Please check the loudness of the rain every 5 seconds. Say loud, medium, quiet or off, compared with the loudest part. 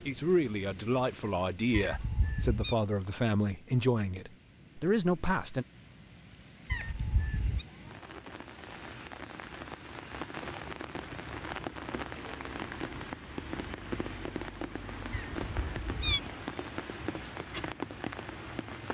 quiet, medium, loud, loud.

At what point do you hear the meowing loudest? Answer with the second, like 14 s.
16 s.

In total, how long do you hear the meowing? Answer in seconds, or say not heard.
3 s.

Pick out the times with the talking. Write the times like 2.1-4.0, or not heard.
0.1-5.7.